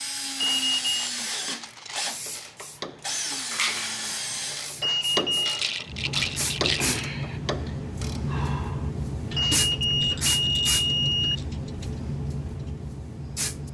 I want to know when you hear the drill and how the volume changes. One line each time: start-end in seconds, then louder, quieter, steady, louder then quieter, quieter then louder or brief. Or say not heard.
0.0-4.8 steady.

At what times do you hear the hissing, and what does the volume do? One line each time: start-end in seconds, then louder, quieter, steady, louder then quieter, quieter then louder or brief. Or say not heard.
0.0-13.6 louder.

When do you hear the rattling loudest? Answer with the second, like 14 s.
6 s.